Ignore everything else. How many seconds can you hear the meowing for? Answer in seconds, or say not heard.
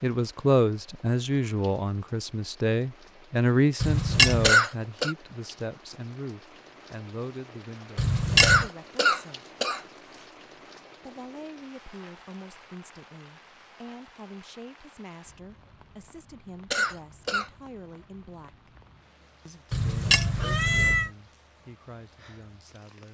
3 s.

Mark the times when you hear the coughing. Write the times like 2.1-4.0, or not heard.
4.4-5.2, 8.4-9.8, 16.7-17.5.